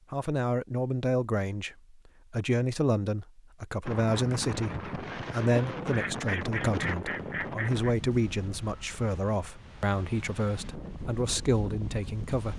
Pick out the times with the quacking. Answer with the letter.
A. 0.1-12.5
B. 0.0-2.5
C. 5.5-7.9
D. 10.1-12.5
C.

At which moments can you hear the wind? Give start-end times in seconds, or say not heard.
3.9-12.5.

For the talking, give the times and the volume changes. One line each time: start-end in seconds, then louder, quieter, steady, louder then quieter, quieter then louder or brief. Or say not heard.
0.1-12.5 steady.